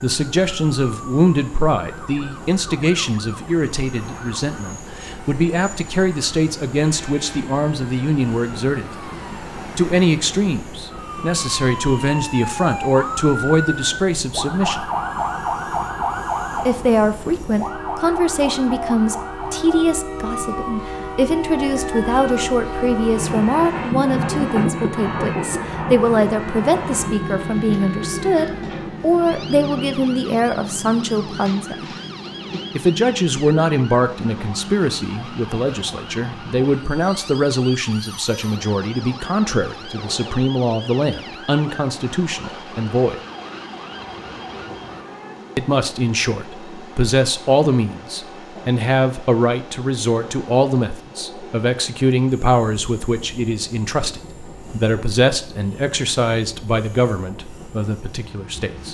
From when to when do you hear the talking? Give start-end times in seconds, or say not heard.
0.0-8.9, 9.8-14.8, 16.6-31.9, 32.8-43.1, 45.5-58.8.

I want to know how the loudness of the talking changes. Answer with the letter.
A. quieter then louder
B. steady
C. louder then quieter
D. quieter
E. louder
B.